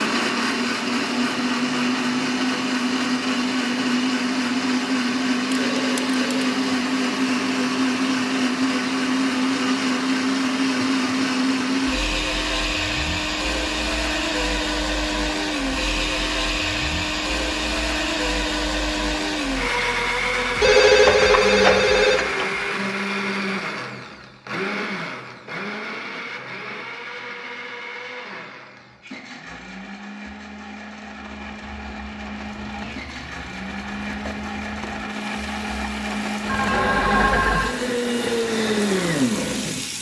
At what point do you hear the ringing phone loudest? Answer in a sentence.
The volume of the ringing phone peaks at 21 seconds.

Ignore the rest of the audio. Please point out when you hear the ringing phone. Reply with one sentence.
You can hear the ringing phone from 5.5 to 6.5 s, from 20.6 to 22.4 s and from 36.5 to 37.8 s.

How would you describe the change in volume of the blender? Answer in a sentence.
The volume of the blender goes down, then up.